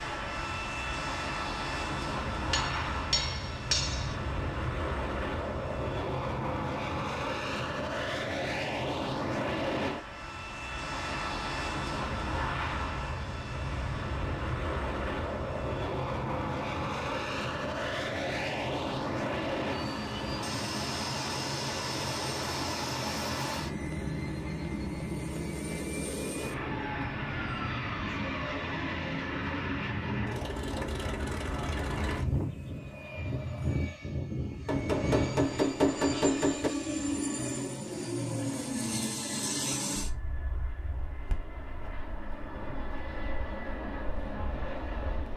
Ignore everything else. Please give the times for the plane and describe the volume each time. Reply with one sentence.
You can hear the plane from 0.0 to 45.3 s, at a steady volume.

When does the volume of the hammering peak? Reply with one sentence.
The loudest moment of the hammering is at 36 seconds.